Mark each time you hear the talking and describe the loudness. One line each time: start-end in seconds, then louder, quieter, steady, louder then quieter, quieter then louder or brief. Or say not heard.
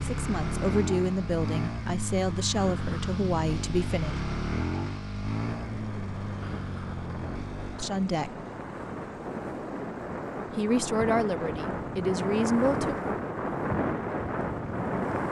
0.0-4.2 steady
7.8-8.3 brief
10.6-12.9 brief.